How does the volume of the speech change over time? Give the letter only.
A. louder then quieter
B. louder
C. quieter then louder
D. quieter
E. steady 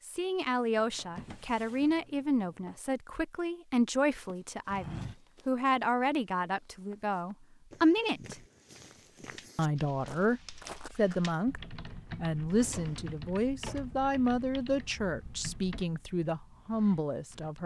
E.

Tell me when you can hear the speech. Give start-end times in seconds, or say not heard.
0.1-8.3, 9.6-17.6.